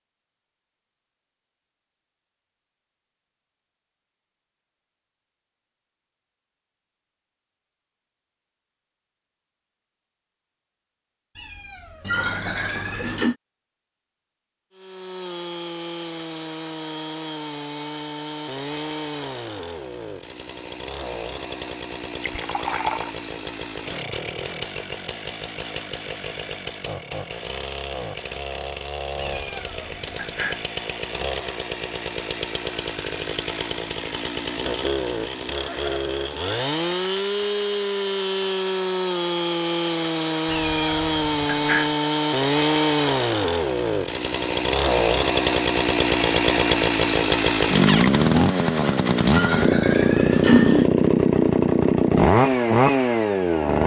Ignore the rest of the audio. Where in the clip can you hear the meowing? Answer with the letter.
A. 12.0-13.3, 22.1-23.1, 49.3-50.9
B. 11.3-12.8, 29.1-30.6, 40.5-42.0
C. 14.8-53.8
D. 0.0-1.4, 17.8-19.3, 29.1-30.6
B.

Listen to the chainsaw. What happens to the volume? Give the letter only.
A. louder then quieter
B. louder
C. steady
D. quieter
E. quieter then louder
B.